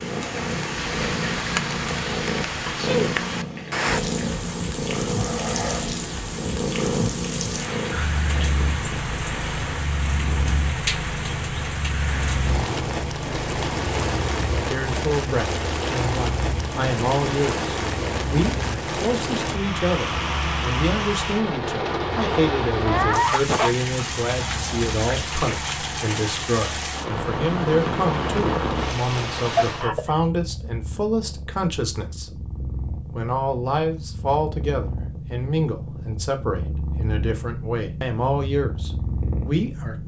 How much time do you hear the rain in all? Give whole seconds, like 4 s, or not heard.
30 s.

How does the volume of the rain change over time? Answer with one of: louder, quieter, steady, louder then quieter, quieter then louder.
steady.